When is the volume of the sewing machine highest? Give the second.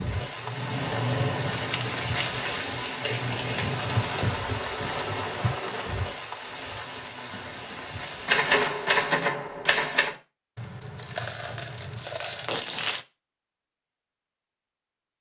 1 s.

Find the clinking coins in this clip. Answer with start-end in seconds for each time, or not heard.
1.5-3.0, 10.6-13.1.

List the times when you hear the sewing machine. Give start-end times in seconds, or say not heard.
0.0-6.2.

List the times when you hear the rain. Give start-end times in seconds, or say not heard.
0.0-9.1.